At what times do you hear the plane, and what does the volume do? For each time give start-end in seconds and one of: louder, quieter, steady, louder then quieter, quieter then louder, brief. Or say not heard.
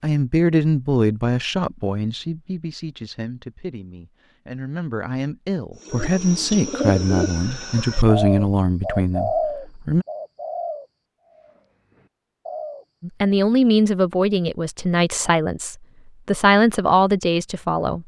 not heard.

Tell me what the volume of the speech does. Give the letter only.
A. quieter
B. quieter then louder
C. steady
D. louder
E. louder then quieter
B.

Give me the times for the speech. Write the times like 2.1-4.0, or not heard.
0.0-10.1, 13.0-18.0.